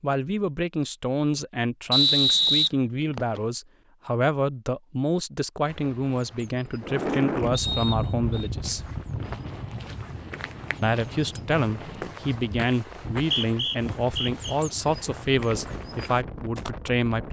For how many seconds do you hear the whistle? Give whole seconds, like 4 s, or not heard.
4 s.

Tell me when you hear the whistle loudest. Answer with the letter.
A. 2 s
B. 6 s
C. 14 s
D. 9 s
A.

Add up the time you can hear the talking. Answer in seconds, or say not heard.
15 s.